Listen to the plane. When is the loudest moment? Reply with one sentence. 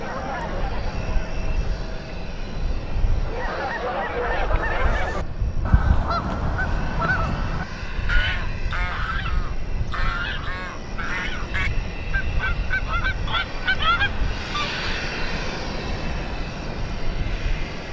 The volume of the plane peaks at 15 seconds.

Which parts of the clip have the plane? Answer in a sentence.
You can hear the plane from 0.0 to 17.8 s.